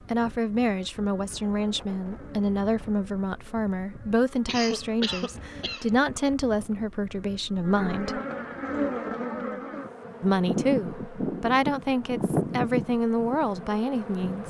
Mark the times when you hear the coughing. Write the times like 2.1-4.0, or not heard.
4.5-5.9.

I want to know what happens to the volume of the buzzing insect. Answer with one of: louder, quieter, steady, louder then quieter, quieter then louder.
louder.